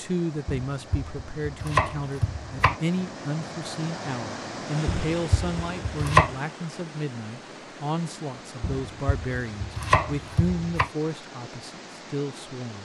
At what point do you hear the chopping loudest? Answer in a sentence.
The loudest moment of the chopping is at 6 seconds.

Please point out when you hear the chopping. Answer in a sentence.
You can hear the chopping from 0.5 to 2.8 s, from 4.8 to 6.3 s and from 8.6 to 10.9 s.